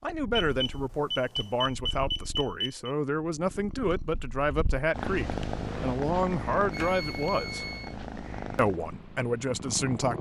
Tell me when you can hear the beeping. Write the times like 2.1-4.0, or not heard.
0.3-3.0, 6.7-8.0.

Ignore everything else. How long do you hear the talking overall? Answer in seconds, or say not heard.
9 s.